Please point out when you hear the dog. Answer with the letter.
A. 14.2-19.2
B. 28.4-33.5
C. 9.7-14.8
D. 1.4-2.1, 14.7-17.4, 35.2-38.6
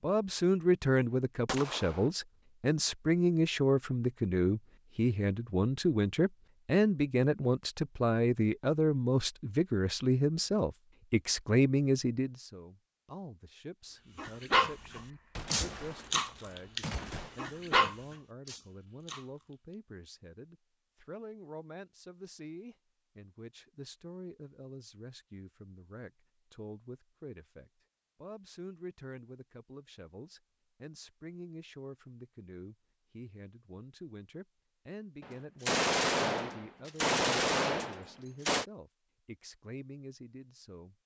A.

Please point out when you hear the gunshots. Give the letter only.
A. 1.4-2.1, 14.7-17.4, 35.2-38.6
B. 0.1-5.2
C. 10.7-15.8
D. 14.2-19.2
A.